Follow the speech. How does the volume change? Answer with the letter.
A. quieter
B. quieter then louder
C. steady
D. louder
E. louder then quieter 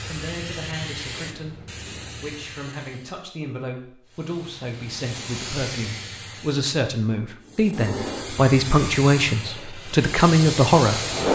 D.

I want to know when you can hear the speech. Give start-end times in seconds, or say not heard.
0.1-11.2.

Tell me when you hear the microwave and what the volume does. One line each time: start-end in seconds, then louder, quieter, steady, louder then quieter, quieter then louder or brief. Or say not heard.
not heard.